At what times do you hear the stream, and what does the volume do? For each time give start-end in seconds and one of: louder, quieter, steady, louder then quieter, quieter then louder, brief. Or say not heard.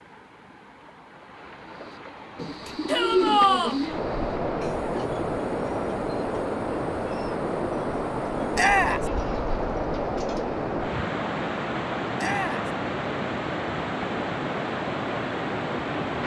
0.0-16.2 louder.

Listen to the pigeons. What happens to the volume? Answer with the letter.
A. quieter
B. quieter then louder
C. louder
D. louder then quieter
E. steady
A.